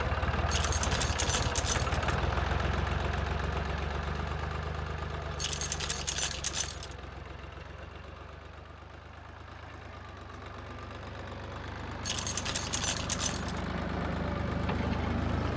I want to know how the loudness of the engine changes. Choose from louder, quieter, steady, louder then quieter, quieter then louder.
quieter then louder.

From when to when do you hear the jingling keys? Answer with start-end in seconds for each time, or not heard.
0.5-2.1, 5.3-7.0, 12.0-13.6.